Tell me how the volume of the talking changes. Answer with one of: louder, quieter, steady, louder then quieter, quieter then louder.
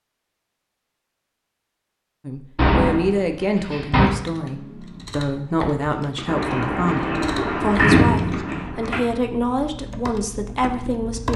steady.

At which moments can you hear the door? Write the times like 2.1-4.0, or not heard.
2.5-4.1, 6.2-9.0.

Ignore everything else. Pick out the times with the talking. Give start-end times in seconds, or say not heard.
2.2-11.3.